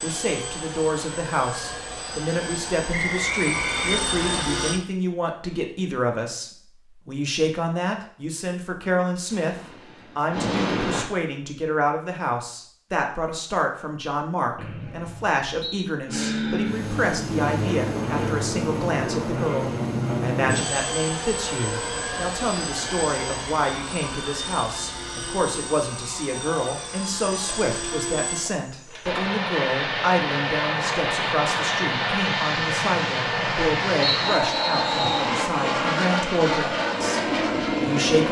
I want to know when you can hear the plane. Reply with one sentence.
The plane can be heard from 0.0 to 4.8 s, from 9.2 to 11.1 s and from 16.1 to 38.2 s.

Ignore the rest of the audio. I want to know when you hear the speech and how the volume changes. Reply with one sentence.
The speech can be heard from 0.0 to 9.6 s, at a steady volume; and from 10.2 to 38.2 s, at a steady volume.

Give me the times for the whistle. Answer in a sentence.
You can hear the whistle from 2.9 to 4.5 s, from 14.6 to 15.8 s and from 34.0 to 35.3 s.